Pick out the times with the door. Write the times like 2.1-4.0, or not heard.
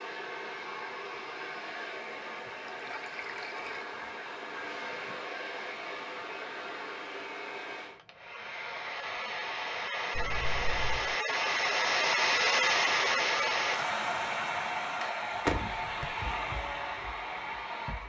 15.4-16.1.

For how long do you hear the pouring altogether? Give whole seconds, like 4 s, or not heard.
2 s.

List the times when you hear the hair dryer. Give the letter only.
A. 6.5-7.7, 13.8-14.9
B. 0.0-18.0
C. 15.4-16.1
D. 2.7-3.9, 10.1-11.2
B.